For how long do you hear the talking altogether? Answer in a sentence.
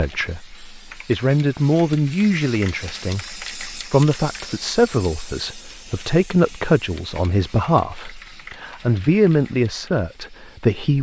You can hear the talking for 11 seconds altogether.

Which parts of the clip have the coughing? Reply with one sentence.
You can't hear the coughing here.